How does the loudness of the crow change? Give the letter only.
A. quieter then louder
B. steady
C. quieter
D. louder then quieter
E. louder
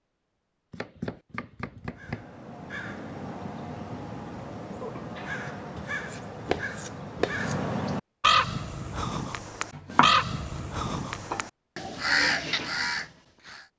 E.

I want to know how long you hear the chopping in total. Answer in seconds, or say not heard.
5 s.